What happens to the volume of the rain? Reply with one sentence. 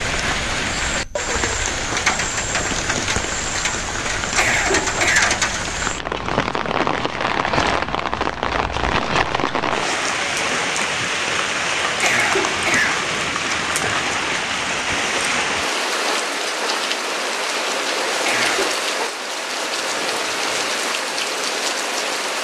The volume of the rain stays about the same.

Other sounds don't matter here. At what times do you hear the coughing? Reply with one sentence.
You can hear the coughing from 4.2 to 5.3 s, from 11.8 to 13.1 s and from 18.1 to 18.8 s.